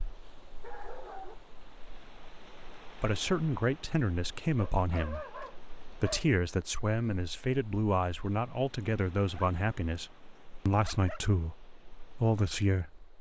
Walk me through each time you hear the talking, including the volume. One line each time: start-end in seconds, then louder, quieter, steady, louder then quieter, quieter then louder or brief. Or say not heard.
3.0-13.1 steady.